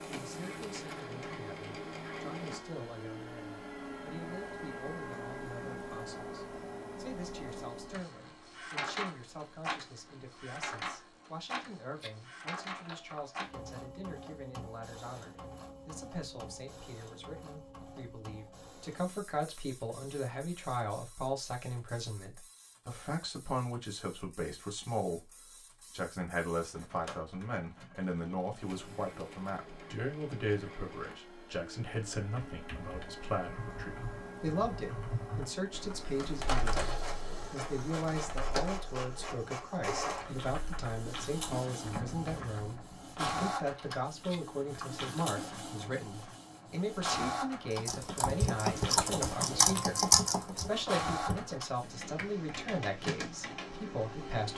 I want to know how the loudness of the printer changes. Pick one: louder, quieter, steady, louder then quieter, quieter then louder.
quieter then louder.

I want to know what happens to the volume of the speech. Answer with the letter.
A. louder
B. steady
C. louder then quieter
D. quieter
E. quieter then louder
A.